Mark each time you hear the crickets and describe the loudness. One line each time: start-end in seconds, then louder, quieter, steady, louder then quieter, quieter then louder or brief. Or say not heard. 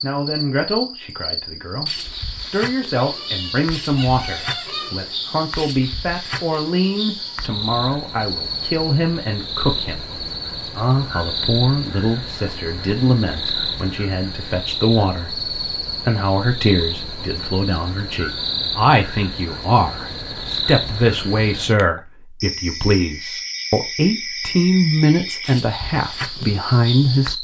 0.0-27.3 steady.